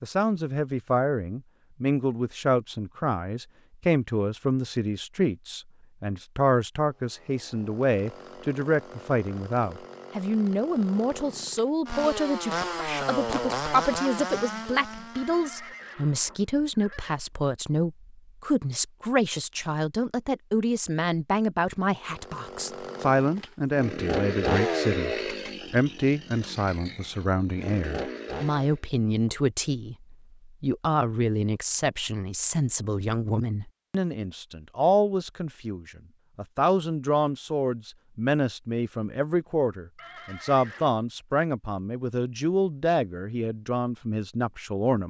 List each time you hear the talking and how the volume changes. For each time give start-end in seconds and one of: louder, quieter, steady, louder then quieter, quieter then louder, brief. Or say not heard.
0.0-45.0 steady.